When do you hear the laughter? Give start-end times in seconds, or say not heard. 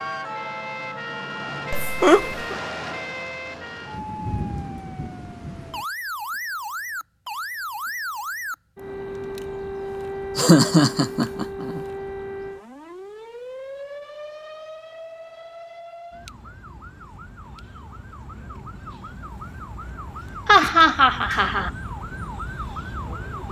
1.7-2.6, 10.3-11.8, 20.4-21.7.